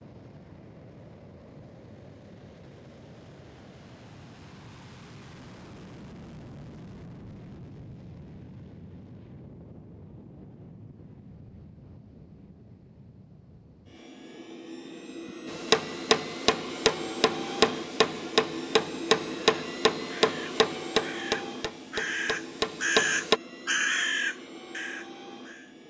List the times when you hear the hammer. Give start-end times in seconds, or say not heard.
15.4-23.4.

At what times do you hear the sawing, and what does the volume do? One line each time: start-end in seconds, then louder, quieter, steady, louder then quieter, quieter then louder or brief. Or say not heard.
not heard.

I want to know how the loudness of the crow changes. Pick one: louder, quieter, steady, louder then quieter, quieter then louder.
louder then quieter.